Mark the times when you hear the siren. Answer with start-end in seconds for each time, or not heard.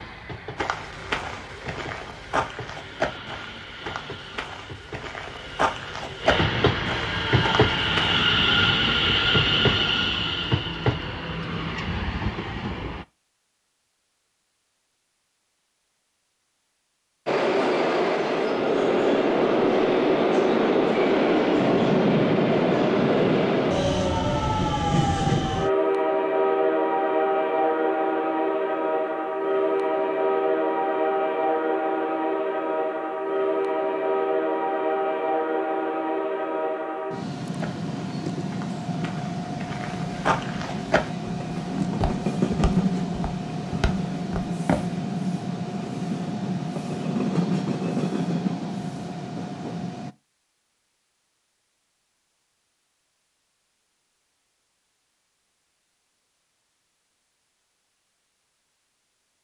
not heard.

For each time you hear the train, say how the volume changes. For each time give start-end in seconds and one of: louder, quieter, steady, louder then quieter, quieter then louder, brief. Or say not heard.
0.0-13.1 louder then quieter
17.2-50.1 quieter.